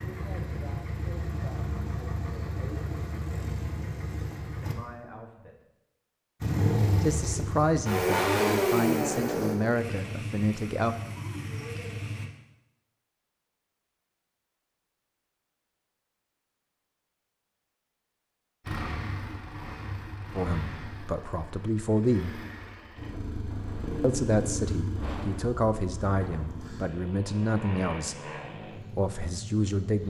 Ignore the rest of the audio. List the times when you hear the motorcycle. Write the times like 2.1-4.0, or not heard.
0.0-4.8, 6.4-12.3, 18.6-30.0.